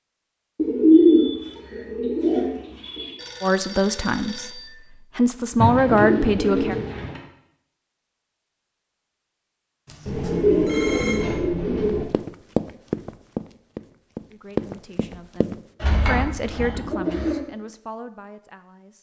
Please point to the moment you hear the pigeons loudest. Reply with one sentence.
The volume of the pigeons peaks at 1 second.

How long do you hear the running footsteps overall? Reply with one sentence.
You can hear the running footsteps for 4 seconds altogether.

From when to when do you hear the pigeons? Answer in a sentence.
You can hear the pigeons from 0.6 to 3.1 s, from 5.5 to 7.2 s, from 10.1 to 12.1 s and from 15.8 to 17.4 s.